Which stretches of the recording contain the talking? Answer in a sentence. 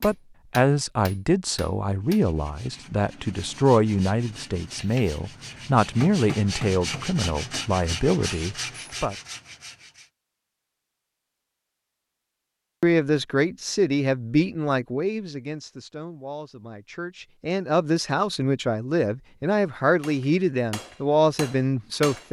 The talking can be heard from 0.0 to 9.2 s and from 12.8 to 22.2 s.